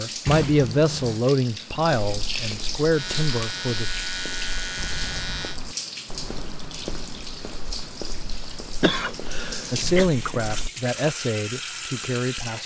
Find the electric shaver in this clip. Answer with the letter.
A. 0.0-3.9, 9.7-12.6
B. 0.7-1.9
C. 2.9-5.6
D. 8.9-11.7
C.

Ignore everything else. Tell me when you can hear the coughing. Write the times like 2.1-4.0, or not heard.
8.8-10.1.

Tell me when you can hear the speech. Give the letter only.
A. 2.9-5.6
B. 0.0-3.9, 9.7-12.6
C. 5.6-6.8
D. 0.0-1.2
B.